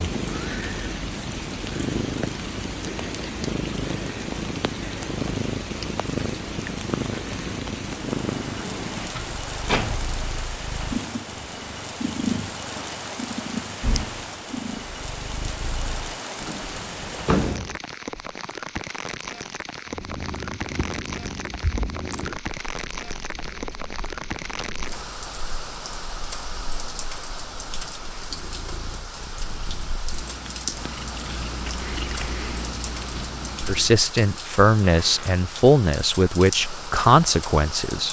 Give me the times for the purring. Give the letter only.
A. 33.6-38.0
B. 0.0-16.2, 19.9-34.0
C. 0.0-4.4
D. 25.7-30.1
B.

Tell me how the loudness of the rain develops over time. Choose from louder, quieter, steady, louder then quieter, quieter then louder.
steady.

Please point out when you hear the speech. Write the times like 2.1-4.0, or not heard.
33.6-38.0.